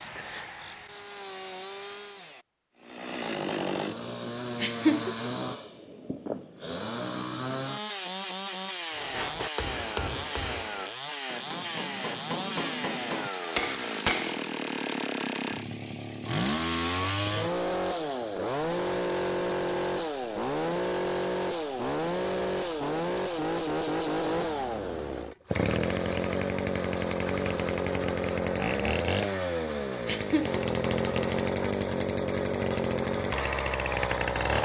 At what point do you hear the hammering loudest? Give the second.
14 s.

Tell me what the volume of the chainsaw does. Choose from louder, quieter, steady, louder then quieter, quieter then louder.
louder.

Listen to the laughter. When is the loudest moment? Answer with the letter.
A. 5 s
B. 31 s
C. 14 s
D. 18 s
A.